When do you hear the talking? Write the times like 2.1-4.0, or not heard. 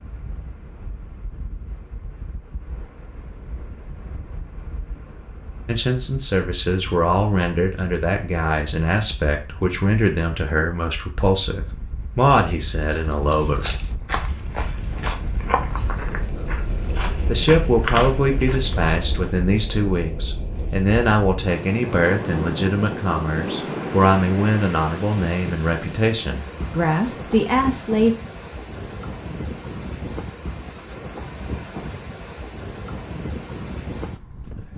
5.7-13.7, 17.2-28.1.